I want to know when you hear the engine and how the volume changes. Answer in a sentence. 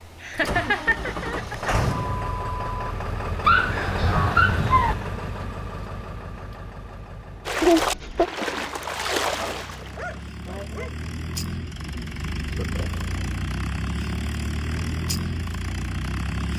You can hear the engine from 0.0 to 16.5 s, getting quieter then louder.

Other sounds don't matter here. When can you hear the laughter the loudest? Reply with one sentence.
The loudest moment of the laughter is at 8 seconds.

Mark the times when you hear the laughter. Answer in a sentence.
The laughter can be heard from 0.2 to 1.8 s, from 7.6 to 8.3 s and from 12.4 to 13.2 s.